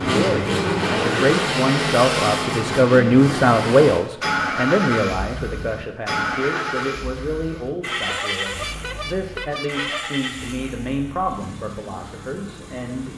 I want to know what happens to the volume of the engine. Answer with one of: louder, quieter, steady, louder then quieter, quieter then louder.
quieter.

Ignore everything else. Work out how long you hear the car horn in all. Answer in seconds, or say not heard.
2 s.